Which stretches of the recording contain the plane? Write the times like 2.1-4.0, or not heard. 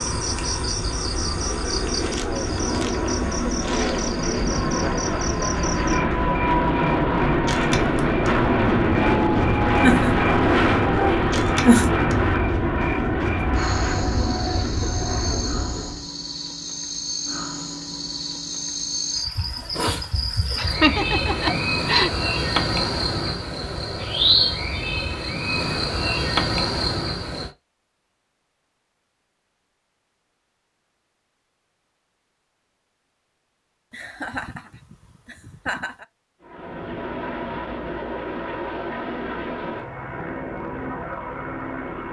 0.0-16.1, 36.4-42.0.